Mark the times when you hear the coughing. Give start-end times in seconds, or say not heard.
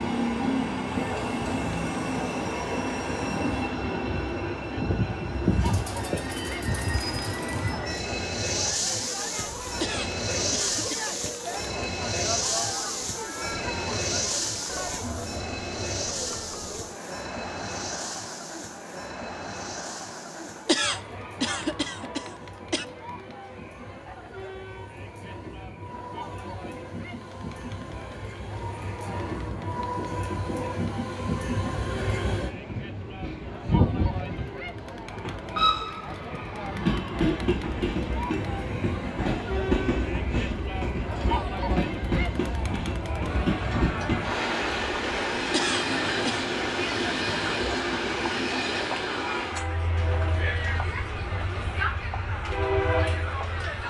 9.8-11.2, 20.6-22.9, 45.5-46.4.